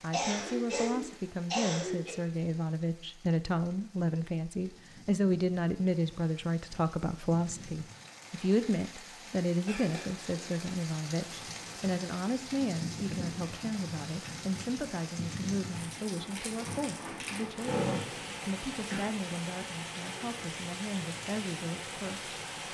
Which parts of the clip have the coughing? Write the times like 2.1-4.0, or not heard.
0.1-2.1, 9.7-10.4, 17.6-19.1.